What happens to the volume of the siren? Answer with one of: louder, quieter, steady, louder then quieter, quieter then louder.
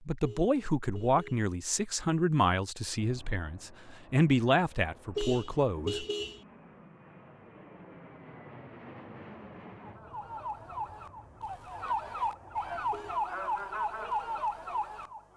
louder.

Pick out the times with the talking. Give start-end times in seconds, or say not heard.
0.1-6.0.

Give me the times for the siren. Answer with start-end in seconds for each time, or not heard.
9.8-15.3.